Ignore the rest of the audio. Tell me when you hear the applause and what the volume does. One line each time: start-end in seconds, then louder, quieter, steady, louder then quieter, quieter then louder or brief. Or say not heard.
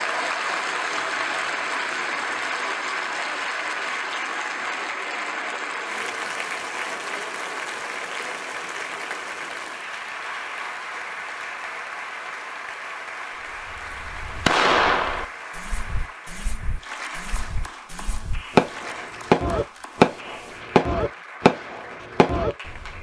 0.0-22.9 quieter.